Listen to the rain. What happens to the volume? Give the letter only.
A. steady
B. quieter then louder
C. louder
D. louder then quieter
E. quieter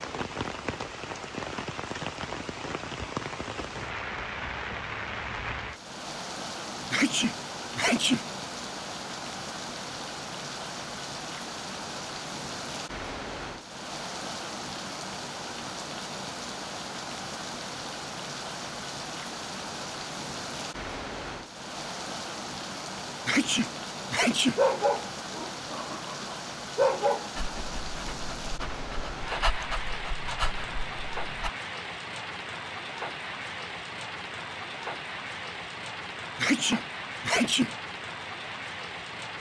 A.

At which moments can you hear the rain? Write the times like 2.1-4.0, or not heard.
0.0-39.3.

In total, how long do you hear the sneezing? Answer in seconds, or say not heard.
4 s.